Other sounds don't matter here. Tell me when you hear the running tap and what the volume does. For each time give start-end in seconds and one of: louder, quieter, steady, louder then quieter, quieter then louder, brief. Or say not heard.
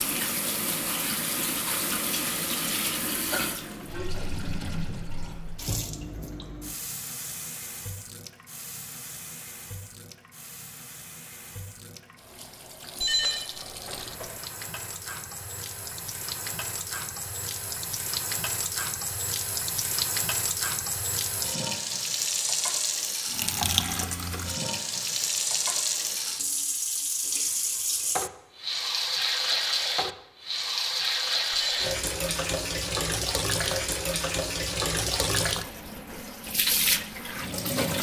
0.0-37.9 quieter then louder.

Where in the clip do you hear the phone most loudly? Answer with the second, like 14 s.
13 s.